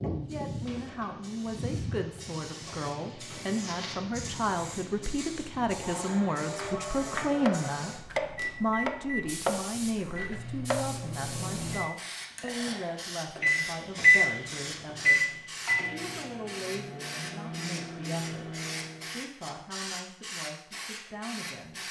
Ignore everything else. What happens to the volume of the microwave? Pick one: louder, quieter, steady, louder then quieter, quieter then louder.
louder then quieter.